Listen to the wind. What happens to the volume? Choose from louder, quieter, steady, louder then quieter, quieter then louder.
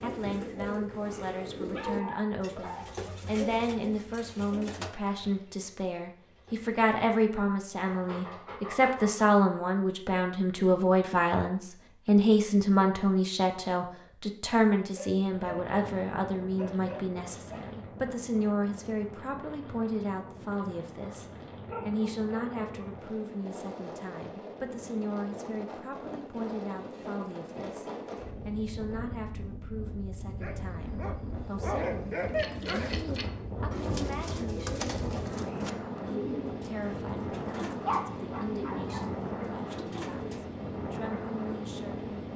louder.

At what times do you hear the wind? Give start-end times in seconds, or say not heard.
15.3-42.3.